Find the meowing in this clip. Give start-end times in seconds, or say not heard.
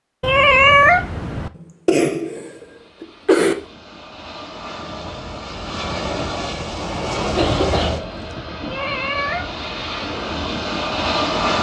0.2-1.5, 8.7-9.9.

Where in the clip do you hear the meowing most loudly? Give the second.
1 s.